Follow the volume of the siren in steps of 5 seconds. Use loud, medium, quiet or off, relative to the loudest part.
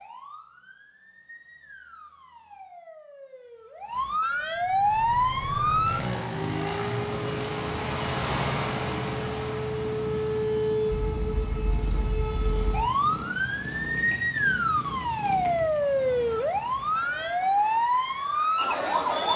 medium, loud, loud, loud.